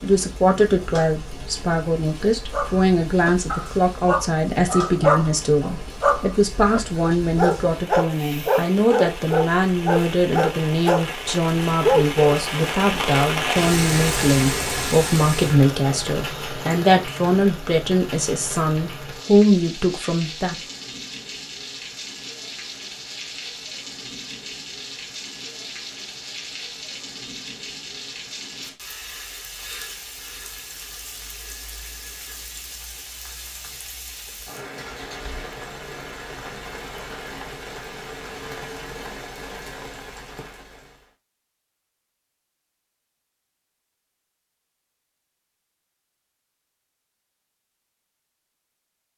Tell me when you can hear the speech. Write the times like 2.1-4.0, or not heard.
0.0-20.6.